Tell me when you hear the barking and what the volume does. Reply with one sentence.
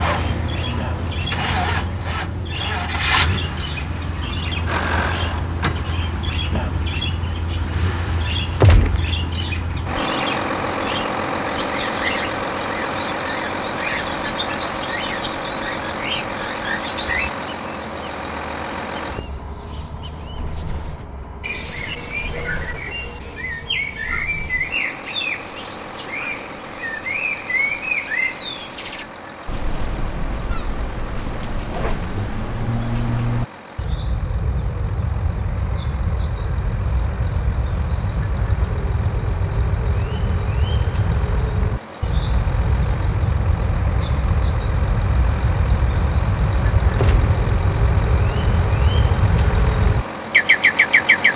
The barking can't be heard in this clip.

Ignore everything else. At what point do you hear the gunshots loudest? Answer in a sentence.
The loudest moment of the gunshots is at 9 seconds.